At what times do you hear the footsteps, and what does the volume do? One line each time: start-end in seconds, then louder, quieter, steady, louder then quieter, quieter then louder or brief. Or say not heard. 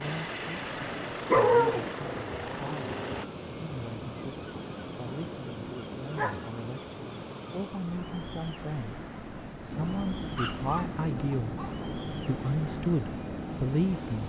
not heard.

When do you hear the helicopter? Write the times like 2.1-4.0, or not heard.
0.0-3.2, 9.7-14.2.